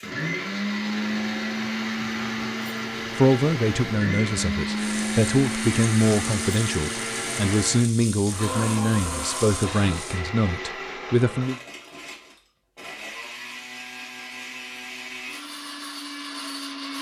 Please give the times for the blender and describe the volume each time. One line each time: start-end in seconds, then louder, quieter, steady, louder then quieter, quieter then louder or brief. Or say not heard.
0.0-16.9 quieter.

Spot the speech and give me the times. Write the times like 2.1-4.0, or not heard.
3.1-11.6.